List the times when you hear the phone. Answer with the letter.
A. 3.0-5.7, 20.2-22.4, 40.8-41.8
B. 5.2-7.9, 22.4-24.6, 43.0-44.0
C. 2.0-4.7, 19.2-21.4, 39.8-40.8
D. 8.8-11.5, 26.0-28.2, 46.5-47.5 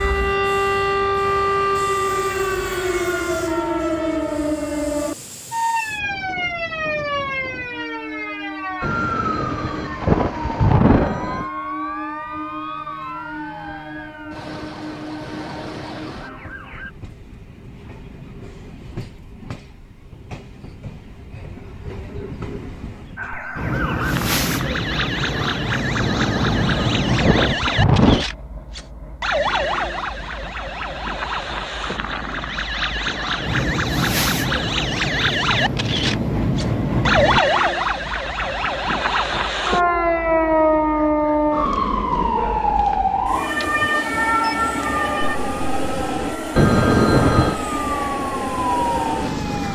D.